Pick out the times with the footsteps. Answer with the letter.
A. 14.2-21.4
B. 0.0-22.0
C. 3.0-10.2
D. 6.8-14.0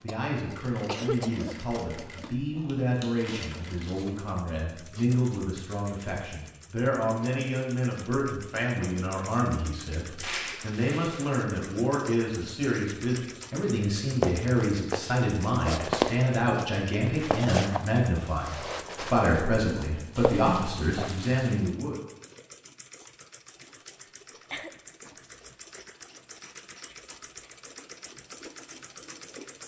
A.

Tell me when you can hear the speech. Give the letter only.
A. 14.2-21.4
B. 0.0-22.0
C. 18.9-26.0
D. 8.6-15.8
B.